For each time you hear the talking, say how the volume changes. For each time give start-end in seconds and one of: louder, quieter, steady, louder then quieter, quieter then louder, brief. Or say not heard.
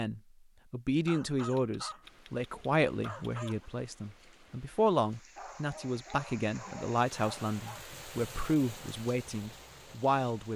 0.0-10.5 steady.